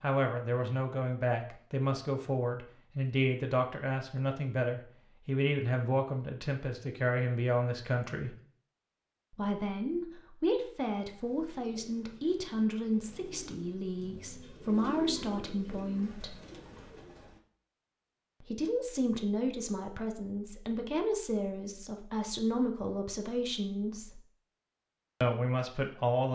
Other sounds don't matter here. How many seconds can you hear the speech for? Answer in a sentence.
The speech can be heard for 22 seconds in total.